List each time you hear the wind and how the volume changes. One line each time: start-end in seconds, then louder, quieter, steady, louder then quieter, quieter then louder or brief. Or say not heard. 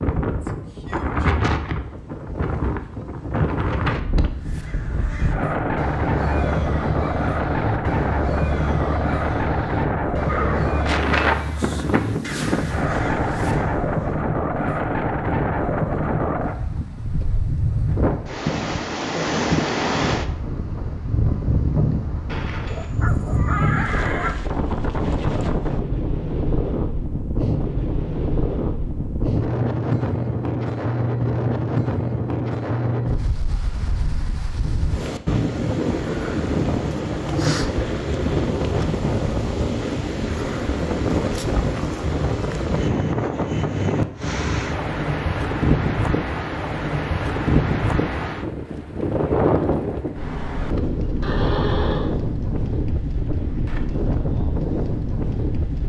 0.0-55.8 steady.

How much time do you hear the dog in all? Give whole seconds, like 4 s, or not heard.
2 s.